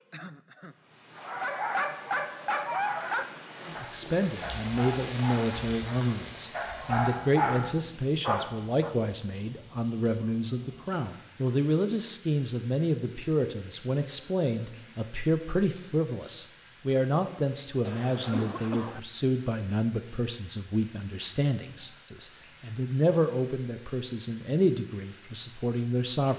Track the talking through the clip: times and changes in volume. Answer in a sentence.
You can hear the talking from 3.6 to 26.3 s, at a steady volume.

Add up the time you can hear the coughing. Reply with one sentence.
You can hear the coughing for 2 seconds altogether.